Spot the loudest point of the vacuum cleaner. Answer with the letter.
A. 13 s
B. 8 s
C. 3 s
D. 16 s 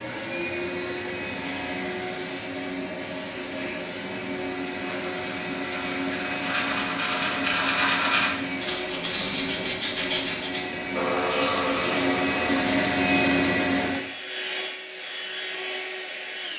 A.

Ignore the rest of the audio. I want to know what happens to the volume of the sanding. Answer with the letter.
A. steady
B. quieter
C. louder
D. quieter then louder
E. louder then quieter
C.